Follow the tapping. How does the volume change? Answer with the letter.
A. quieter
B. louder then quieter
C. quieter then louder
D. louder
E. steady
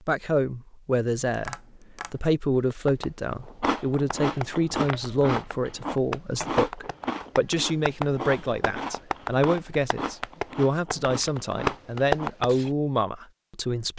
D.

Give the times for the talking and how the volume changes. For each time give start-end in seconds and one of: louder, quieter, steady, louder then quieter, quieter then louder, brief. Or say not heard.
0.1-13.9 steady.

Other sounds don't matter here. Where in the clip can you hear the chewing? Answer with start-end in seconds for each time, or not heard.
3.5-12.8.